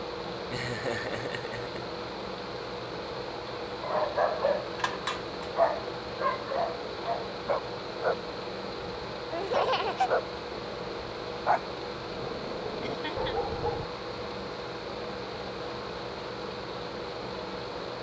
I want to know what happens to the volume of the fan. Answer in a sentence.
The loudness of the fan stays about the same.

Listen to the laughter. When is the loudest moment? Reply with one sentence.
The loudest moment of the laughter is at 10 seconds.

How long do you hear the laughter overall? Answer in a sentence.
You can hear the laughter for 3 seconds altogether.